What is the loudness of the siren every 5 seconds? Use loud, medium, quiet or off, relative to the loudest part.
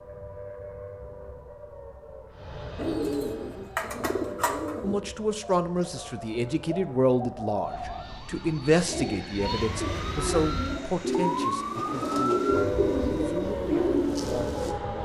medium, medium, loud.